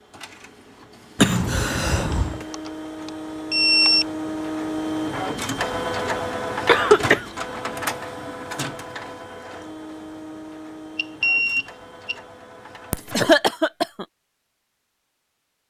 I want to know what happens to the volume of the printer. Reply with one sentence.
The volume of the printer goes up, then down.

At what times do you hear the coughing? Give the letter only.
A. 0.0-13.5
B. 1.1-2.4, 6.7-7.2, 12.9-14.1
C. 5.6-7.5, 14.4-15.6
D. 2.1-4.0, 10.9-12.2
B.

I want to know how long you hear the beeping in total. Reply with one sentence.
You can hear the beeping for 3 seconds altogether.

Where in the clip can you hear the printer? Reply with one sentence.
You can hear the printer from 0.0 to 13.5 s.